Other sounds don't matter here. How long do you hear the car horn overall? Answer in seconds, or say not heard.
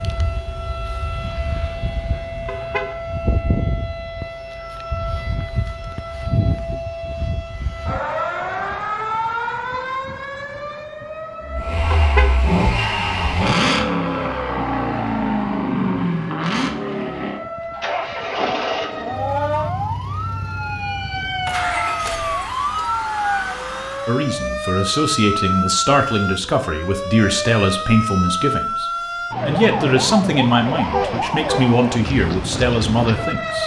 2 s.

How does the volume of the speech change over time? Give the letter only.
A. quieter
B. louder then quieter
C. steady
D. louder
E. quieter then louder
C.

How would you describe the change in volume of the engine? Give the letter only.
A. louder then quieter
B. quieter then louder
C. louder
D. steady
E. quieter
B.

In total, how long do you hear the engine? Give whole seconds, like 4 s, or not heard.
13 s.